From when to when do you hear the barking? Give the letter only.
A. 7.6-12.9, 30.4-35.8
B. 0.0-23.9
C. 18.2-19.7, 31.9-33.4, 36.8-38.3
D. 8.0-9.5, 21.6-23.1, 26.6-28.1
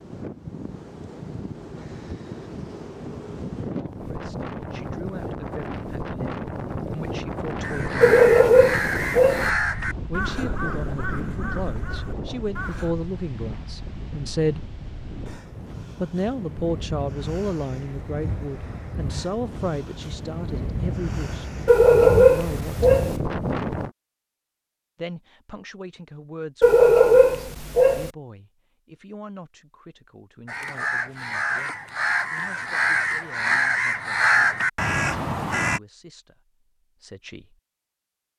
D.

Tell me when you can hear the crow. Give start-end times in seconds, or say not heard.
7.6-12.9, 30.4-35.8.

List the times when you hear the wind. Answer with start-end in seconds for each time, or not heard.
0.0-23.9.